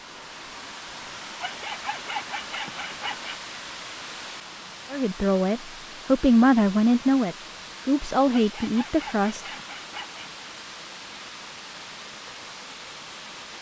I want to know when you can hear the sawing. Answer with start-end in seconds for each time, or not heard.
1.4-3.4, 8.3-10.3.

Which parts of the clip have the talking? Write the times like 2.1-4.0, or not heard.
4.9-9.4.